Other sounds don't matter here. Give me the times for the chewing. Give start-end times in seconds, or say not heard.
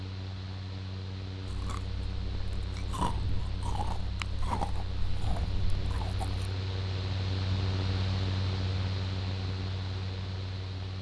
1.4-6.5.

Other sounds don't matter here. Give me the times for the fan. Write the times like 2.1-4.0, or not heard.
0.0-10.9.